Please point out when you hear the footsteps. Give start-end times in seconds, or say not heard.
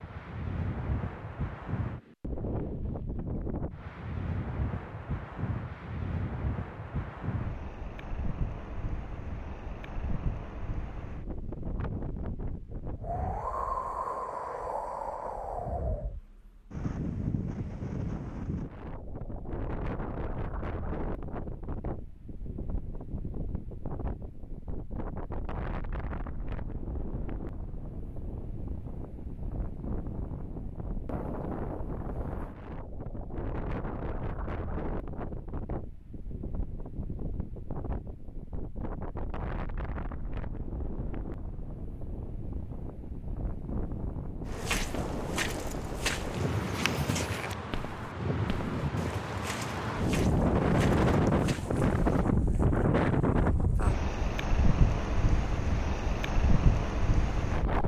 44.5-52.2.